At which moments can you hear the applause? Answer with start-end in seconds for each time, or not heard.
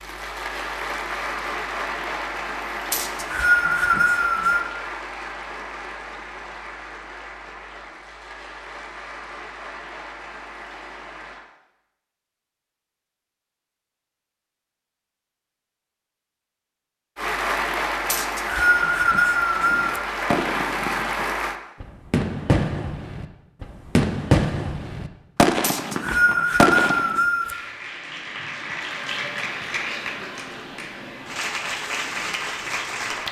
0.0-11.4, 17.1-21.6, 26.4-33.2.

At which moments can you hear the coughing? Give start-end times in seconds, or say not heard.
not heard.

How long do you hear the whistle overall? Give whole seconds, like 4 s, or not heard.
6 s.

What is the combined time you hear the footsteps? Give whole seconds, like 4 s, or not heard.
not heard.